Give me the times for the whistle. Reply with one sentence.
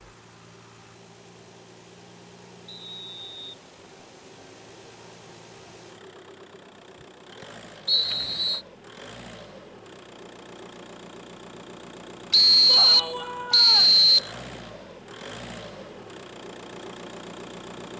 The whistle can be heard from 2.6 to 3.5 s, from 7.8 to 8.6 s and from 12.3 to 14.3 s.